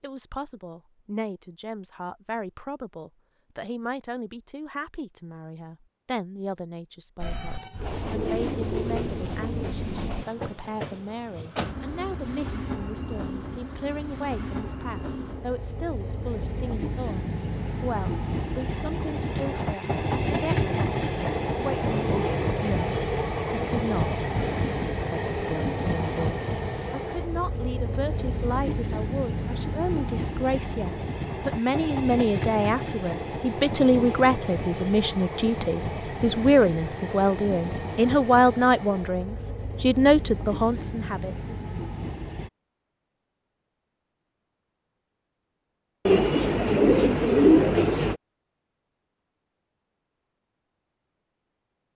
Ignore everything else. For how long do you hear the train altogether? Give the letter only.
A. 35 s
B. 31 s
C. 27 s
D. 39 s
A.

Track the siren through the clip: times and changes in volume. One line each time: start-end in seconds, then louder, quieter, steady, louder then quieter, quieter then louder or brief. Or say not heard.
not heard.